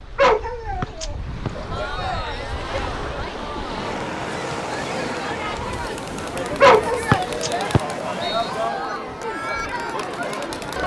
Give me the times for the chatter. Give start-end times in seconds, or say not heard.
1.7-10.8.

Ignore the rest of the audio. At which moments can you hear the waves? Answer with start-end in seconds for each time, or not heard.
0.0-8.8.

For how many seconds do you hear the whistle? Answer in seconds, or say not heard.
3 s.